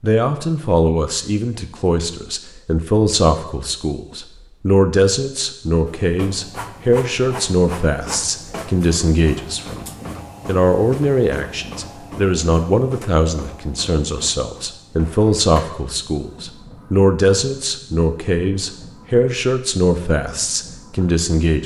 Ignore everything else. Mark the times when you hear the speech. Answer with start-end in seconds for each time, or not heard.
0.0-21.6.